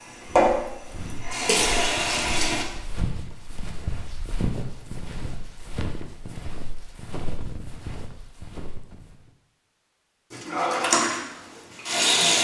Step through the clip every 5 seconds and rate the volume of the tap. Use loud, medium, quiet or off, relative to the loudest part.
loud, off, loud.